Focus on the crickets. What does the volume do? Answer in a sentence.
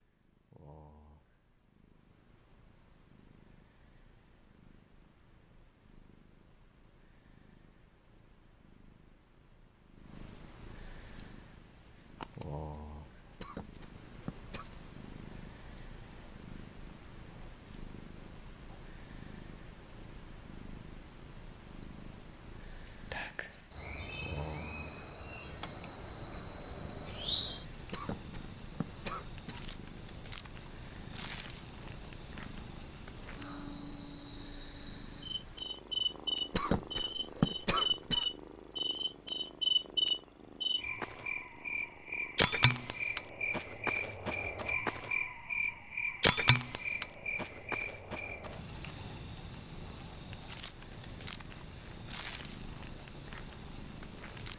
The loudness of the crickets goes up.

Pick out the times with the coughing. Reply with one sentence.
The coughing can be heard from 13.3 to 14.7 s, from 27.9 to 29.8 s and from 36.5 to 38.2 s.